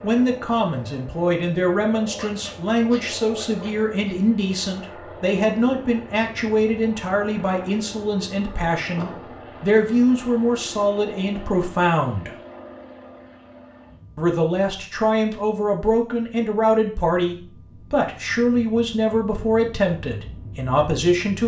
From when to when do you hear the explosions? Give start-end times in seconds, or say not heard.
8.9-9.3.